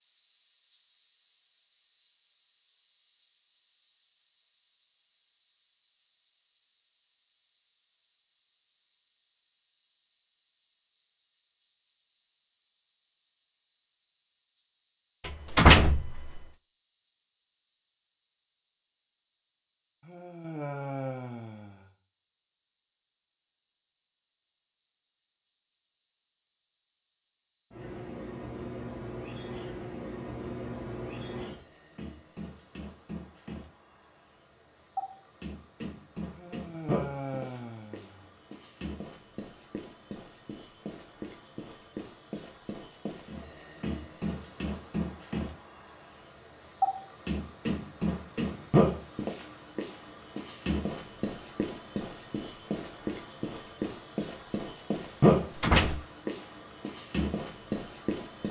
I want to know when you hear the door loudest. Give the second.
16 s.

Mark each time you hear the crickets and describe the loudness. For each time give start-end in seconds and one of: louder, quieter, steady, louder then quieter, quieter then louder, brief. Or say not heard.
0.0-58.4 quieter then louder.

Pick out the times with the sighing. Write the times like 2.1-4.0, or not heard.
20.0-21.9, 36.3-38.3.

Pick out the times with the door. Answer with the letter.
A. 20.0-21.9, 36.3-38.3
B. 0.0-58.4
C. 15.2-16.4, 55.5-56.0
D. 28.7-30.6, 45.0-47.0
C.